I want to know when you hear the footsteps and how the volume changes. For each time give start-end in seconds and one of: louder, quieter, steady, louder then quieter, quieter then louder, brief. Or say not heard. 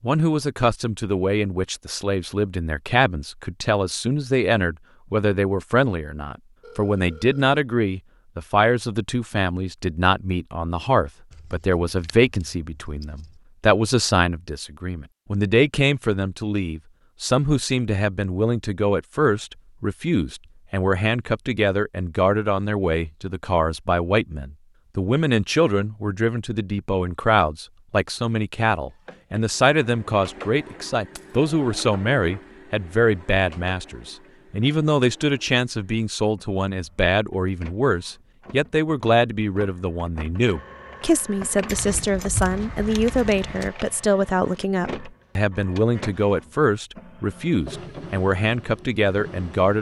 not heard.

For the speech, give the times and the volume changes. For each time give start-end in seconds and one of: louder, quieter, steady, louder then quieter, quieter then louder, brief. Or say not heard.
0.0-49.7 steady.